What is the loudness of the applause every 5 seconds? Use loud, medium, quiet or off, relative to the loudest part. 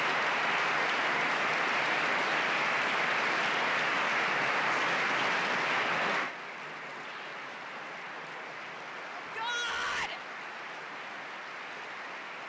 loud, medium, quiet.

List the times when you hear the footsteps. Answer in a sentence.
The footsteps can't be heard in this clip.